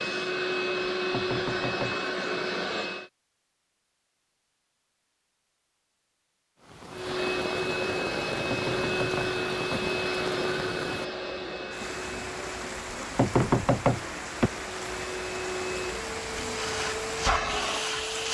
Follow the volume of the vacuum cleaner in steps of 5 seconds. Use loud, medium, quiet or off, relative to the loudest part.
loud, loud, medium, loud.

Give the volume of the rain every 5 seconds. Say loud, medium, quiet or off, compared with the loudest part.
off, loud, loud, loud.